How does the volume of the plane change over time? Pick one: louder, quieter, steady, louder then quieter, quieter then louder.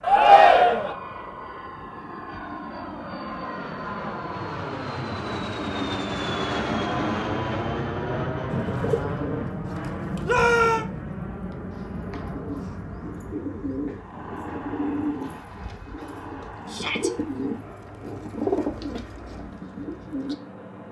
louder then quieter.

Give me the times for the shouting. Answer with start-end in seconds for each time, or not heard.
0.0-0.9, 10.2-10.8, 16.7-17.1.